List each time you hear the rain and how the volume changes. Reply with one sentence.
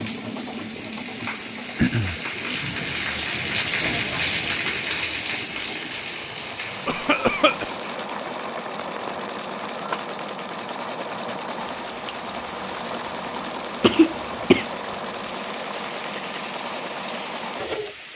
The rain can be heard from 0.0 to 18.1 s, getting quieter.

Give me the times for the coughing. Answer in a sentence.
The coughing can be heard from 1.8 to 2.2 s, from 6.8 to 7.7 s and from 13.8 to 14.7 s.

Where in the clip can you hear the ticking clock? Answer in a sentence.
The ticking clock can't be heard in this clip.